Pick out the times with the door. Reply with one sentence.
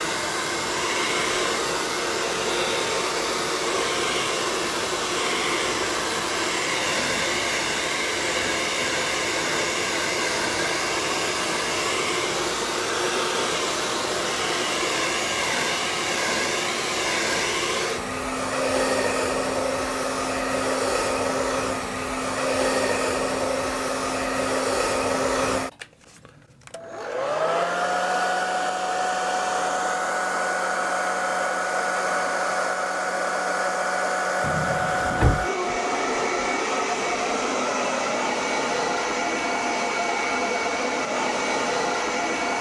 The door can be heard from 34.4 to 35.5 s.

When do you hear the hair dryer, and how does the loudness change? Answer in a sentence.
The hair dryer can be heard from 0.0 to 42.5 s, at a steady volume.